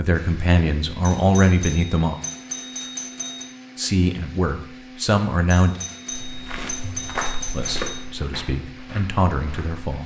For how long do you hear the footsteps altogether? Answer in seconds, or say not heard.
4 s.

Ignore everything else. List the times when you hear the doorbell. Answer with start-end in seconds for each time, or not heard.
1.0-3.5, 5.5-8.0.